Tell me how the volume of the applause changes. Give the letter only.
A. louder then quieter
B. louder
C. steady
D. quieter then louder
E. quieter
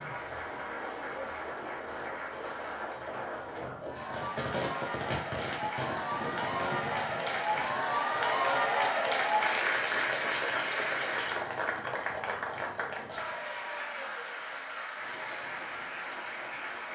A.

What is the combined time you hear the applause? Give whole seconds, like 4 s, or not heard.
17 s.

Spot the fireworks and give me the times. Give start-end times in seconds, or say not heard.
4.0-13.6.